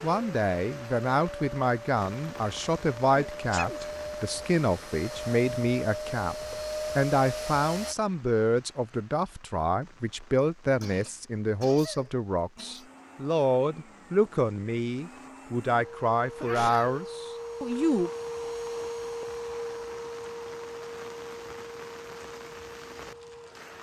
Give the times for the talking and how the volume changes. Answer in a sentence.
You can hear the talking from 0.0 to 18.1 s, at a steady volume.